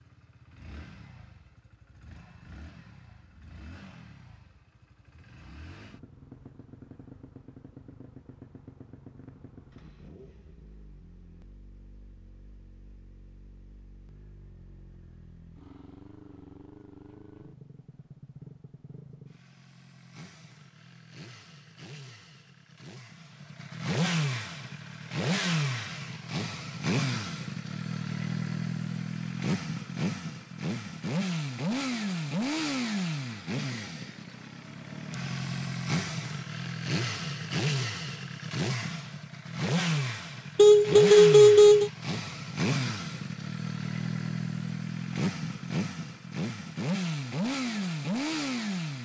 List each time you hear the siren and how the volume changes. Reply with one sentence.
You can't hear the siren here.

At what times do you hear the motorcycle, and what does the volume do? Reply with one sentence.
You can hear the motorcycle from 0.0 to 48.9 s, getting louder.